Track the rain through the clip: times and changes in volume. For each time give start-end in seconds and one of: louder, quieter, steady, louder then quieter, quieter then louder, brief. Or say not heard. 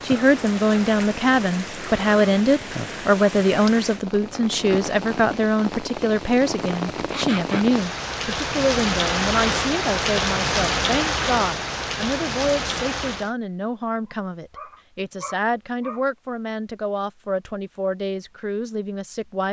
0.0-13.3 louder.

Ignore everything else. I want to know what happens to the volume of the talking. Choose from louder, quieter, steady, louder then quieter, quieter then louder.
quieter.